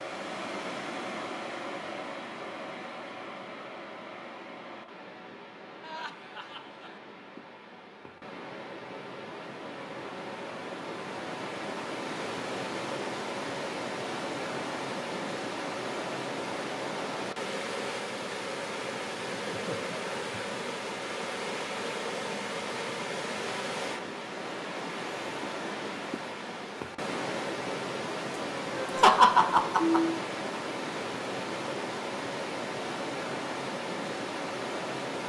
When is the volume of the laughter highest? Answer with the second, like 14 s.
29 s.